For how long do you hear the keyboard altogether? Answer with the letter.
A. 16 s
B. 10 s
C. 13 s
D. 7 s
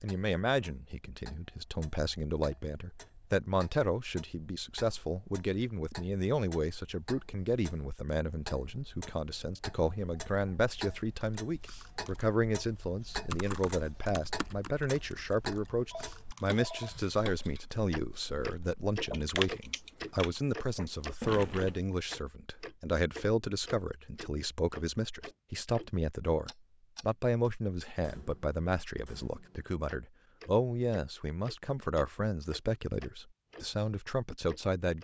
B.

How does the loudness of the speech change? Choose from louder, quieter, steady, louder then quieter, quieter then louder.
steady.